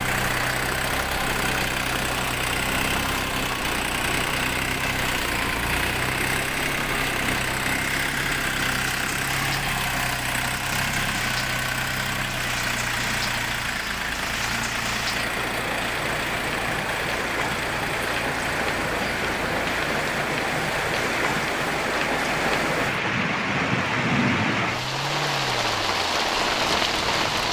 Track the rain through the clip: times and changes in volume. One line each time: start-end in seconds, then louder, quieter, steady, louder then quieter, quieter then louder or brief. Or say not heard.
0.1-27.4 louder.